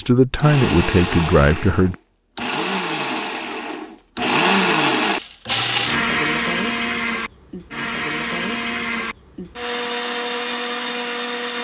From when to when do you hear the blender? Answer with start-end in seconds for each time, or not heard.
0.0-11.5.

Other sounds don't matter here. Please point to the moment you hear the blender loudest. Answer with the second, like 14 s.
5 s.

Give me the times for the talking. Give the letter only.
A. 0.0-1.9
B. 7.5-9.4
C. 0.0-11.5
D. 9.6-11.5
A.